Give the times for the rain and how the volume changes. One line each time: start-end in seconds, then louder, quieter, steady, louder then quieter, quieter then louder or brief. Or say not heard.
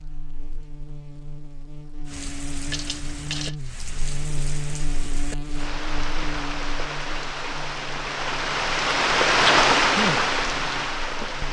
2.0-11.4 louder.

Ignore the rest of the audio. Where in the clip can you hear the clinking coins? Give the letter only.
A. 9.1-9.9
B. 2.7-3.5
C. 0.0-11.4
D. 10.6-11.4
B.